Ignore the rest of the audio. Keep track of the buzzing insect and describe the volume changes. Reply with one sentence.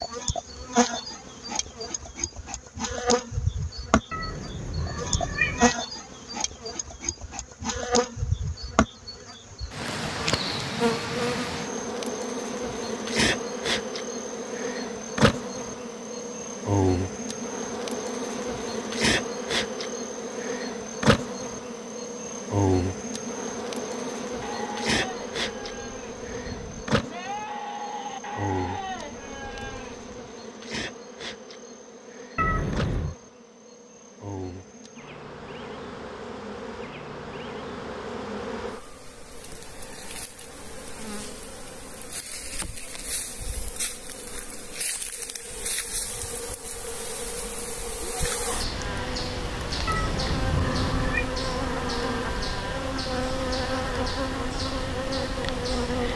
The volume of the buzzing insect goes down, then up.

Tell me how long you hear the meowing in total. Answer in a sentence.
You can hear the meowing for 4 seconds altogether.